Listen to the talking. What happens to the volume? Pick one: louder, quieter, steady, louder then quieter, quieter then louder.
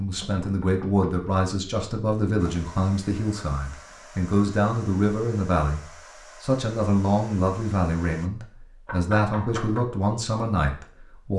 steady.